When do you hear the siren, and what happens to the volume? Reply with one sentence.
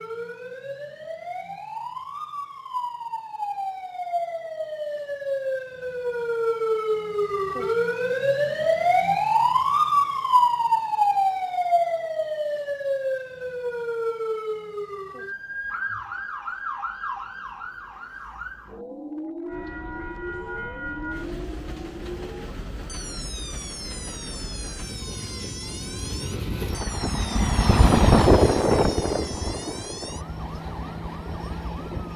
You can hear the siren from 0.0 to 32.1 s, getting louder then quieter.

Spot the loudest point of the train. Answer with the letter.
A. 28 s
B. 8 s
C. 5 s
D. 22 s
A.